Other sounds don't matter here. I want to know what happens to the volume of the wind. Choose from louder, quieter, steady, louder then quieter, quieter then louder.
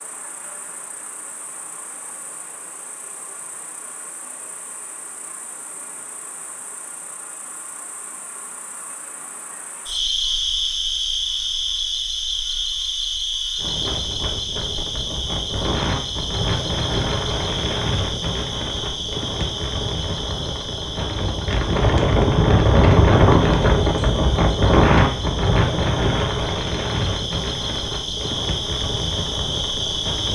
louder then quieter.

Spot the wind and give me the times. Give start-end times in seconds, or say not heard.
13.6-30.2.